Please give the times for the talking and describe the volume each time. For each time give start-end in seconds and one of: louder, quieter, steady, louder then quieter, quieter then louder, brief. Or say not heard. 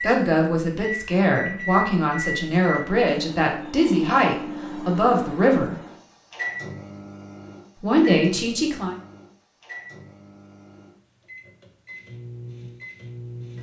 0.0-5.8 steady
7.8-8.9 brief.